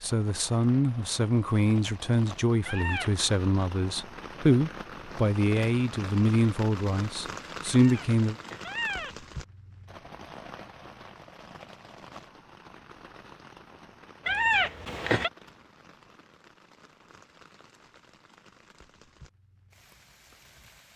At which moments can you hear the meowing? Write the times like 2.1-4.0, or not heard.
2.6-3.3, 7.7-9.2, 14.2-15.3.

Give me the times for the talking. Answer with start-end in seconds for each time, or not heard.
0.0-8.3.